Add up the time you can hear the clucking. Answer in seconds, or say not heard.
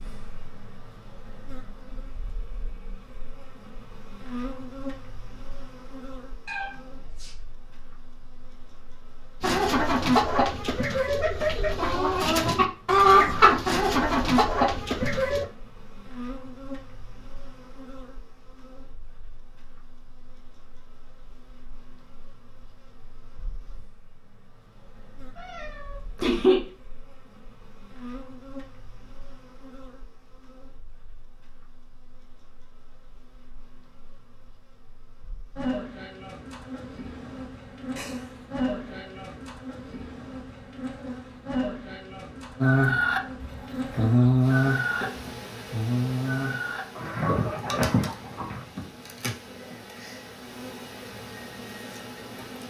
12 s.